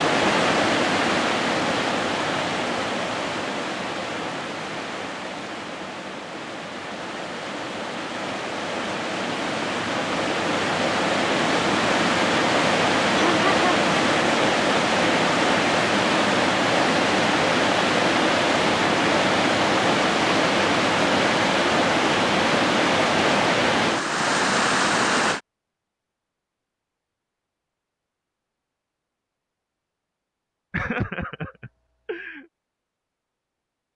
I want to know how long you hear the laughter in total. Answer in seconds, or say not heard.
2 s.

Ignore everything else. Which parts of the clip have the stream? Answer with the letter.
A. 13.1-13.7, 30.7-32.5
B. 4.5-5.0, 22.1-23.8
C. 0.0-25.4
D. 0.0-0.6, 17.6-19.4
C.